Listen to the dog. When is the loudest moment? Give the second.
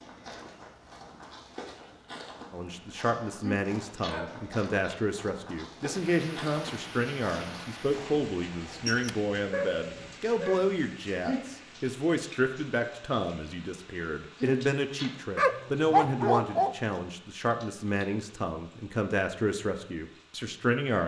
16 s.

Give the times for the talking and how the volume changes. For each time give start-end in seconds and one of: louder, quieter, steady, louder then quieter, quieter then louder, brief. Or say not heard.
2.5-21.0 steady.